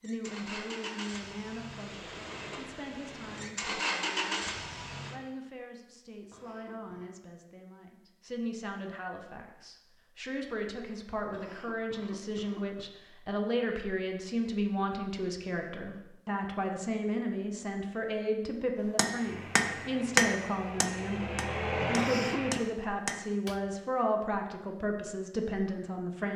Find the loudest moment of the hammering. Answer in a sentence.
The volume of the hammering peaks at 20 seconds.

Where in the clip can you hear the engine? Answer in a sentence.
You can hear the engine from 0.0 to 5.2 s and from 19.2 to 22.6 s.